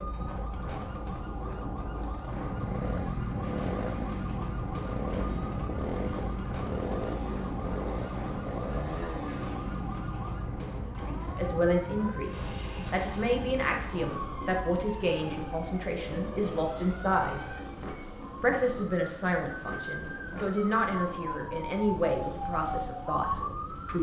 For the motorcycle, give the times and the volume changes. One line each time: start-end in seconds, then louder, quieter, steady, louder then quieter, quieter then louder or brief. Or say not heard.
2.4-23.9 quieter.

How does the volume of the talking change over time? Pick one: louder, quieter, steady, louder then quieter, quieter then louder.
steady.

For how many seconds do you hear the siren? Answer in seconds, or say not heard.
24 s.